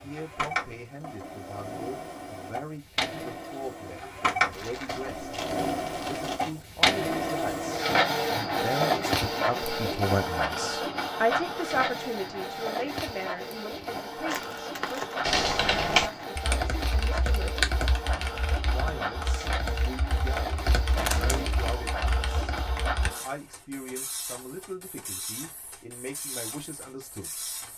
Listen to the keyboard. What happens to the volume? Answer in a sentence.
The volume of the keyboard goes down.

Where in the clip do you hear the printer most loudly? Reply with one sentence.
The loudest moment of the printer is at 8 seconds.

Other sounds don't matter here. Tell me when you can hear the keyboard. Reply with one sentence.
You can hear the keyboard from 15.2 to 23.1 s.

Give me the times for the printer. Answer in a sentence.
The printer can be heard from 0.0 to 27.7 s.